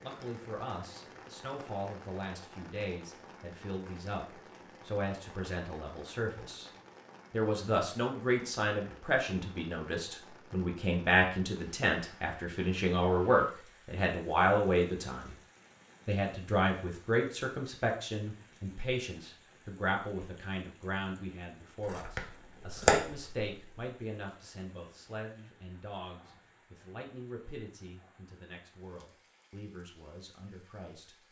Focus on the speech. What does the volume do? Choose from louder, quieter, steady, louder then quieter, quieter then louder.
louder then quieter.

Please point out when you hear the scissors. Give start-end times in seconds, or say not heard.
21.8-23.5.